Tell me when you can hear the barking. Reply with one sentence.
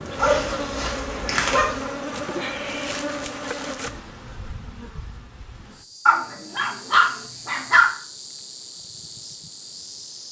You can hear the barking from 0.2 to 1.9 s and from 6.0 to 7.9 s.